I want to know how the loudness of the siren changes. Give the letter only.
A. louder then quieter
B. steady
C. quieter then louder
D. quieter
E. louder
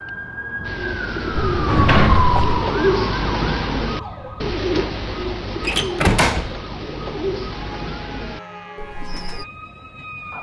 D.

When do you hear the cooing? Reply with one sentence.
You can hear the cooing from 0.6 to 9.4 s.